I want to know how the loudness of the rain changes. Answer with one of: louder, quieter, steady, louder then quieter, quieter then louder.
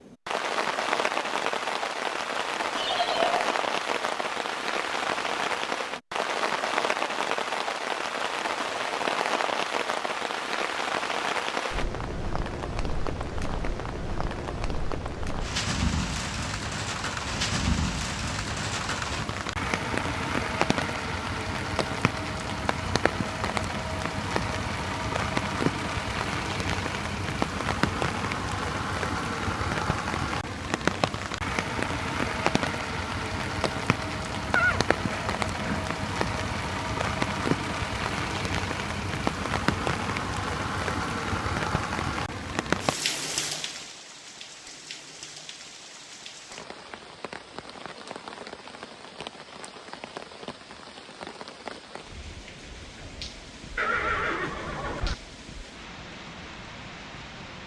quieter.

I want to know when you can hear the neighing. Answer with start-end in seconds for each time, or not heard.
2.8-3.4, 34.5-35.9, 53.8-55.1.